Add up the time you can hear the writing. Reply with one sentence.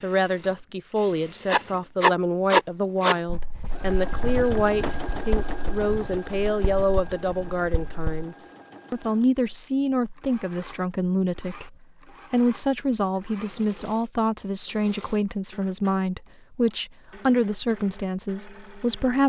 You can hear the writing for 7 seconds altogether.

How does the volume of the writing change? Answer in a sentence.
The volume of the writing goes down.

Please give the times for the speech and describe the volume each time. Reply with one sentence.
The speech can be heard from 0.0 to 19.2 s, at a steady volume.